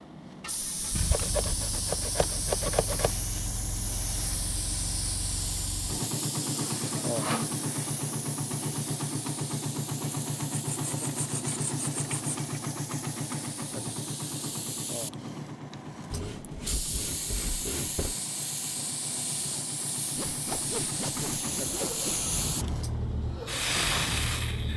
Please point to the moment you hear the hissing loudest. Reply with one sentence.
The volume of the hissing peaks at 24 seconds.